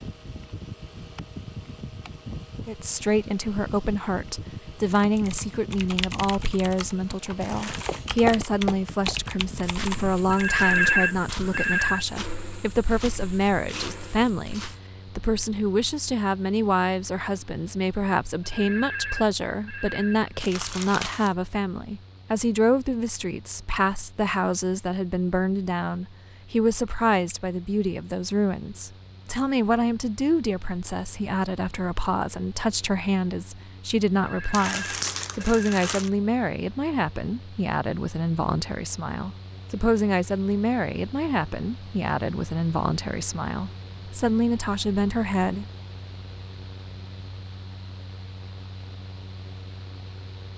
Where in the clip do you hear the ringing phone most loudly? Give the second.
11 s.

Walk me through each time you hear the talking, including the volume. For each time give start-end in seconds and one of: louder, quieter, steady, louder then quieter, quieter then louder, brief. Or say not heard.
2.6-45.6 steady.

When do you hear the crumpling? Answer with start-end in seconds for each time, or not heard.
7.4-8.1, 20.4-21.3, 34.5-36.1.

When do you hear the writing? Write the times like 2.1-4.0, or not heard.
not heard.